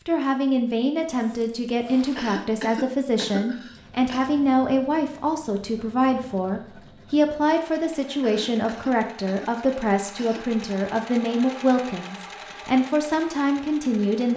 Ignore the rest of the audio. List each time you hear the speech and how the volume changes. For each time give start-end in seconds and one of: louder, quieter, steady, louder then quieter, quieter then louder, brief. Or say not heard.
0.1-14.3 steady.